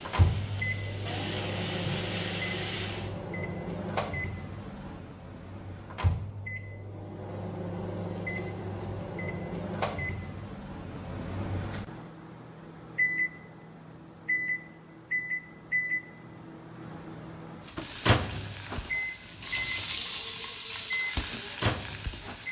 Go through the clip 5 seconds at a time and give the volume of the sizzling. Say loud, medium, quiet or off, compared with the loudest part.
loud, off, off, loud, loud.